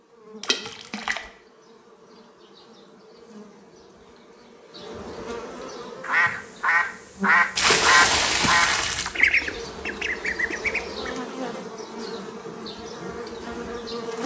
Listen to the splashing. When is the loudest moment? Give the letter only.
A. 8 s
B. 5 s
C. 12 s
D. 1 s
A.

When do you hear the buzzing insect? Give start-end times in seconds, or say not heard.
0.0-14.2.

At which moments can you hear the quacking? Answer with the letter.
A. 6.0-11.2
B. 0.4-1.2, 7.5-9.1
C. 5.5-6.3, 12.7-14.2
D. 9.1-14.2
A.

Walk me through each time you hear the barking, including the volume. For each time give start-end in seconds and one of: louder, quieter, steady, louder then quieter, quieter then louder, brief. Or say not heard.
not heard.